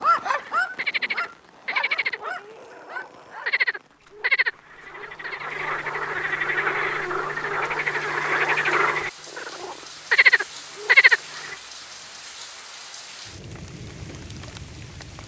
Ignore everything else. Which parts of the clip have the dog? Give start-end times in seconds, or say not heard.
0.0-3.6.